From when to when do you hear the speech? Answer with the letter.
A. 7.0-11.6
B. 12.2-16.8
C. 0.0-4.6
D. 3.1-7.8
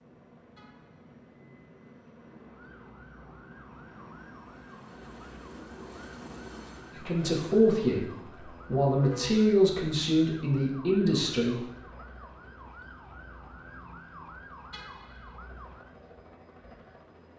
A.